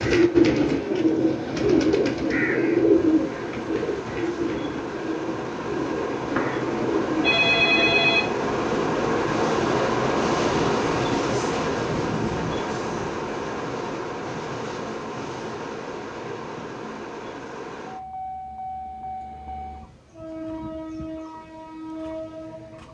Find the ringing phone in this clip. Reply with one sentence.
The ringing phone can be heard from 6.3 to 8.2 s.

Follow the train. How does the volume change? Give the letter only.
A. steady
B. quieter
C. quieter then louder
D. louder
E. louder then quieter
E.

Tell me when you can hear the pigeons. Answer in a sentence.
The pigeons can be heard from 0.0 to 7.8 s.